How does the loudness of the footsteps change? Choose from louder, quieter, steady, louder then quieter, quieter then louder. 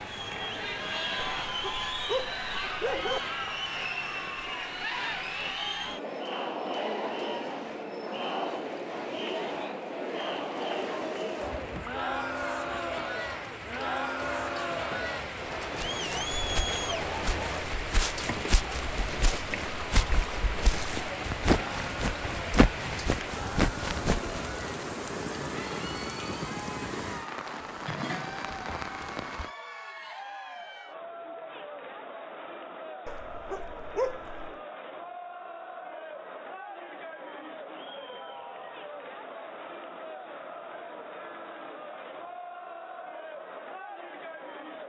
louder.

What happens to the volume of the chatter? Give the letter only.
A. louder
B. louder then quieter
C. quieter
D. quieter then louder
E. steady
C.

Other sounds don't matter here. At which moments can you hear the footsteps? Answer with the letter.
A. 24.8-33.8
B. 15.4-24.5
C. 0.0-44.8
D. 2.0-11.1
B.